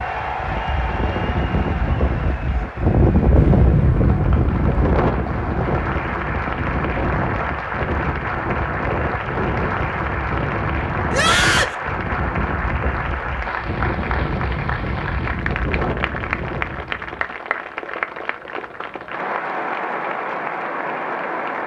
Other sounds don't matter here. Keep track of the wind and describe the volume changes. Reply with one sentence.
The loudness of the wind goes down.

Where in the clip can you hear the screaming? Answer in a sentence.
The screaming can be heard from 11.1 to 11.8 s.